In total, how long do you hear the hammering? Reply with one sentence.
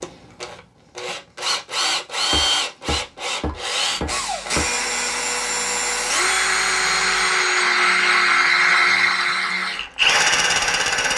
You can hear the hammering for 3 seconds altogether.